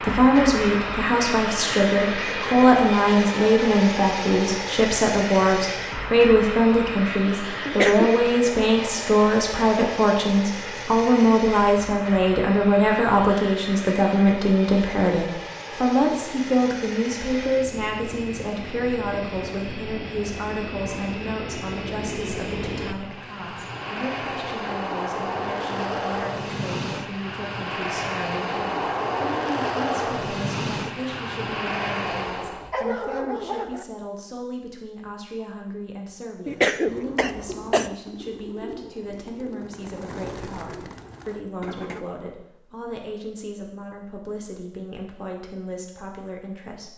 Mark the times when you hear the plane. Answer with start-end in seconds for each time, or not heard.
0.0-32.7.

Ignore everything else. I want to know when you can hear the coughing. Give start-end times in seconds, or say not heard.
7.7-8.2, 36.5-37.9.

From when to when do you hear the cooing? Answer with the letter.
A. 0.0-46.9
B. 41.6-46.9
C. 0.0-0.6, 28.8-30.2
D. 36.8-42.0
D.